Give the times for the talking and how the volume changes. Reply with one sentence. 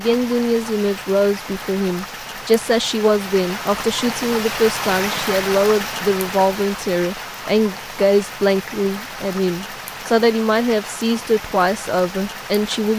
The talking can be heard from 0.0 to 12.9 s, at a steady volume.